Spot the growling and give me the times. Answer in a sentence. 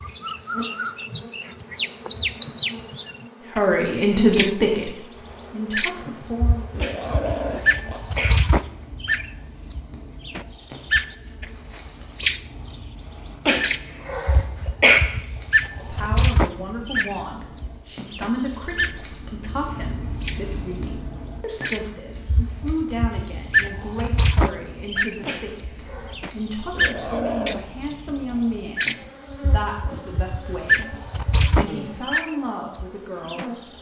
The growling can be heard from 6.7 to 8.1 s and from 26.7 to 27.6 s.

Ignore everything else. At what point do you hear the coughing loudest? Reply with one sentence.
The loudest moment of the coughing is at 15 seconds.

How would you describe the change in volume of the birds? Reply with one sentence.
The volume of the birds stays about the same.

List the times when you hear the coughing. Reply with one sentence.
You can hear the coughing from 6.8 to 8.3 s, from 13.4 to 15.0 s and from 25.2 to 26.1 s.